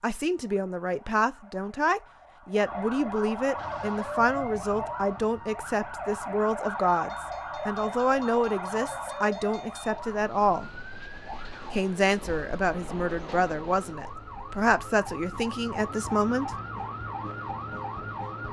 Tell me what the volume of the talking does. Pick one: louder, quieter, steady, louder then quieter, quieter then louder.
steady.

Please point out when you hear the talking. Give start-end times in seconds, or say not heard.
0.0-10.8, 11.7-16.5.